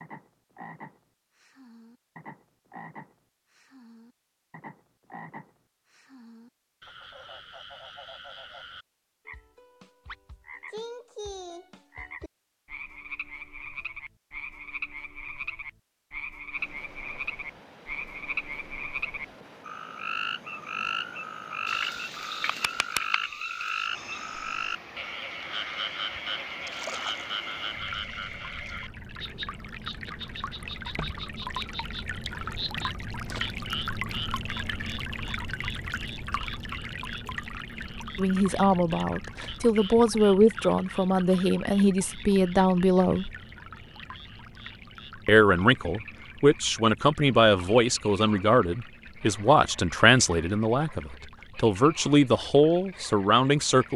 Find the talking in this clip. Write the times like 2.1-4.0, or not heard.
38.1-43.3, 45.2-53.9.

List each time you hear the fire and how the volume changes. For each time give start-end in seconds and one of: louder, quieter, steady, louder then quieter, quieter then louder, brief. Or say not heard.
not heard.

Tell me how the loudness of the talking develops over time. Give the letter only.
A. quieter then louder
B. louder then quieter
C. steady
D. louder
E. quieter
C.